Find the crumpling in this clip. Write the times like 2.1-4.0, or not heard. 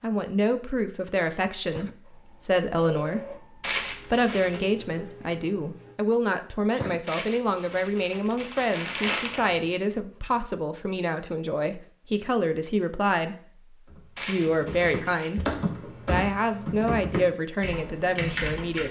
3.6-4.7, 7.0-9.8, 14.2-15.4.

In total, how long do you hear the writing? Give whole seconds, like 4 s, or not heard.
not heard.